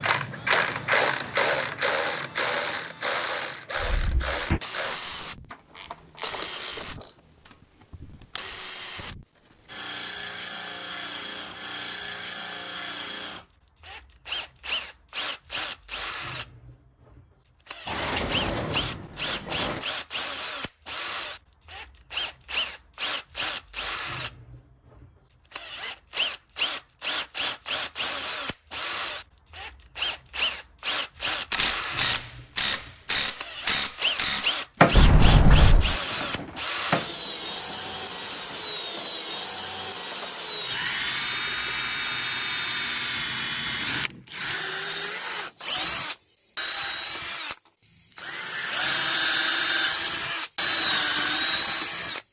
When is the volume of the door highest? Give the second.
35 s.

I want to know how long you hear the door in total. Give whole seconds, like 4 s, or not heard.
4 s.